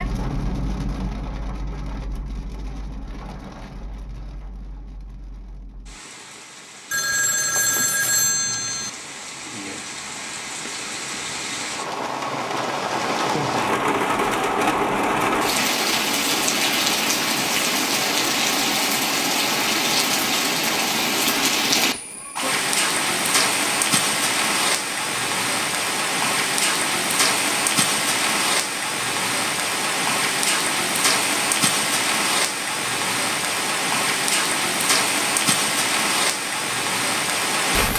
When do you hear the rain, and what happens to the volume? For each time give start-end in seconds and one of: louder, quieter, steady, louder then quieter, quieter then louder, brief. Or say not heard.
0.0-37.9 louder.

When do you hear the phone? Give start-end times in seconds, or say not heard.
6.9-8.9.